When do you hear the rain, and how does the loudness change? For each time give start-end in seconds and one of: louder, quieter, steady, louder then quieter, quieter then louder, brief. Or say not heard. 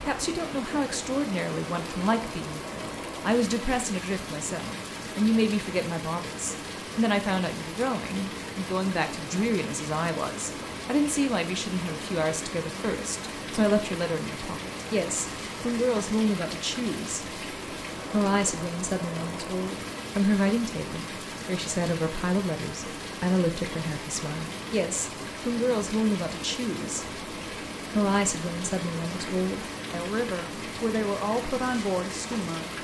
0.0-32.7 steady.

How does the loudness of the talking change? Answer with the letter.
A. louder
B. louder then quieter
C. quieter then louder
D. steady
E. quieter
D.